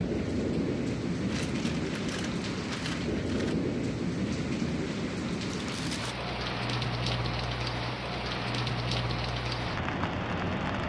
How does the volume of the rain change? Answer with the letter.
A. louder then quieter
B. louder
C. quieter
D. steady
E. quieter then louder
D.